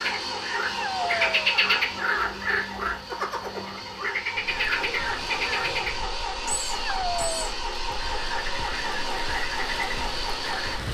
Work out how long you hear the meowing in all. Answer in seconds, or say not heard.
2 s.